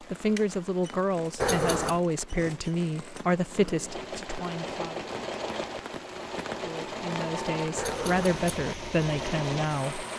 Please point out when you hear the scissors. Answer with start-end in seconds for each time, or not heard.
1.4-2.0, 7.8-8.7.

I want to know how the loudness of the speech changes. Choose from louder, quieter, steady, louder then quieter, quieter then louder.
steady.